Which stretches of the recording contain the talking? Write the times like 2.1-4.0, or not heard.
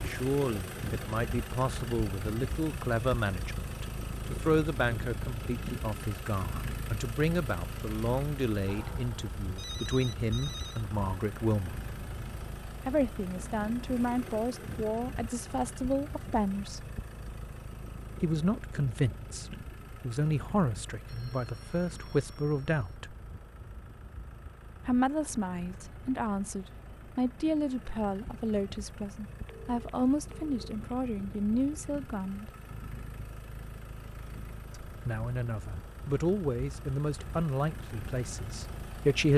0.1-11.8, 12.8-16.9, 18.2-23.1, 24.9-32.5, 34.9-39.3.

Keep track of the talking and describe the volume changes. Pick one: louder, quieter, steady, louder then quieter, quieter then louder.
steady.